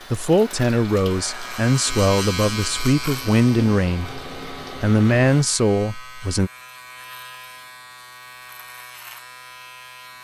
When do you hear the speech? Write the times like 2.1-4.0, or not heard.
0.1-6.5.